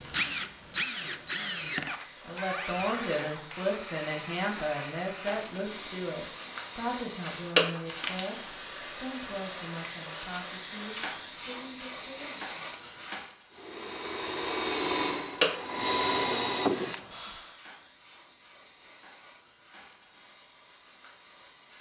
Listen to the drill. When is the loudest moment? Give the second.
16 s.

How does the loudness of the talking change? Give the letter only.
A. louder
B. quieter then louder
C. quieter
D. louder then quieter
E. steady
C.